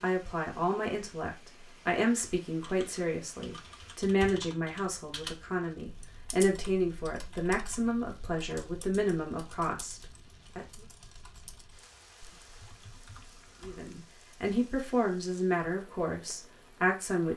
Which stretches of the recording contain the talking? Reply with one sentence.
The talking can be heard from 0.0 to 10.8 s and from 13.6 to 17.3 s.